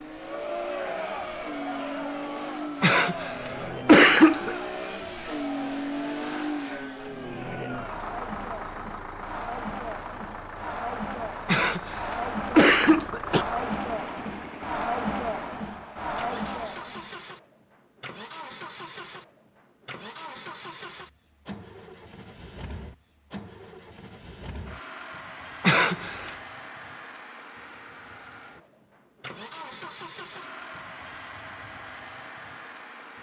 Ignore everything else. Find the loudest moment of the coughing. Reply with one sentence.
The volume of the coughing peaks at 4 seconds.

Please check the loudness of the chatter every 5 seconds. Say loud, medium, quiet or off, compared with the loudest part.
loud, medium, loud, loud, off, off, off.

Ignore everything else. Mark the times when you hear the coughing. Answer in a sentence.
The coughing can be heard from 2.8 to 4.5 s, from 11.4 to 13.4 s and from 25.6 to 26.4 s.